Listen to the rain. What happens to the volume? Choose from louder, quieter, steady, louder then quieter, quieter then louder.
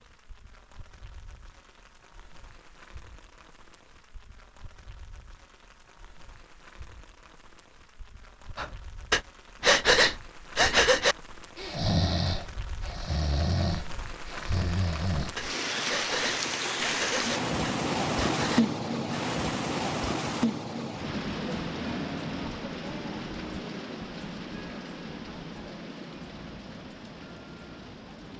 louder then quieter.